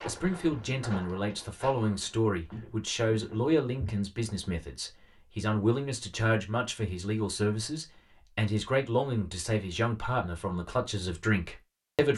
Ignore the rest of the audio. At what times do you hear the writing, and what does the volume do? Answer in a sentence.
The writing can't be heard in this clip.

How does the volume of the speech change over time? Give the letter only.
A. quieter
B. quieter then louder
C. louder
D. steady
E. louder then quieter
D.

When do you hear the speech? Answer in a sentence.
You can hear the speech from 0.1 to 12.1 s.